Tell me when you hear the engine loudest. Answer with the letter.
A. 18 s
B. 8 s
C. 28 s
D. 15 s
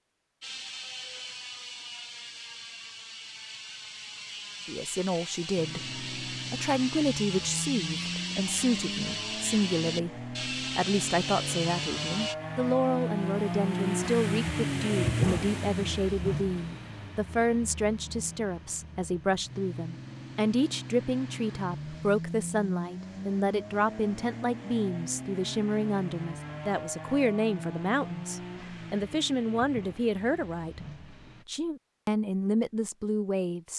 D.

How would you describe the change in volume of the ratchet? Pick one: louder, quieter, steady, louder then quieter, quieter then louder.
louder.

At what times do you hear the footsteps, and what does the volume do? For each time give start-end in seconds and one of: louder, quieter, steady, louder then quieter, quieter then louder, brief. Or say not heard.
not heard.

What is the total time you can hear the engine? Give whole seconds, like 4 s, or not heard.
26 s.